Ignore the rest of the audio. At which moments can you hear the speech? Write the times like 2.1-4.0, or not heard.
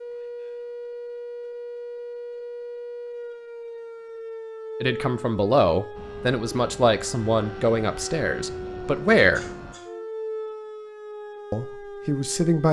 4.8-9.4, 11.5-12.6.